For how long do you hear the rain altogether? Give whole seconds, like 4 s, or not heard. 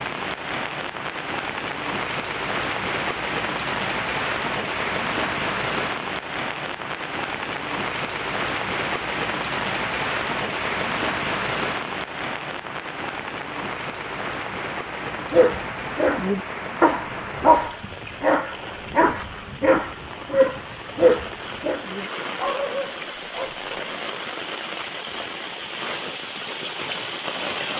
28 s.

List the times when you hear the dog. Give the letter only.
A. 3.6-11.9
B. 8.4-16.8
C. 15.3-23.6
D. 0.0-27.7
C.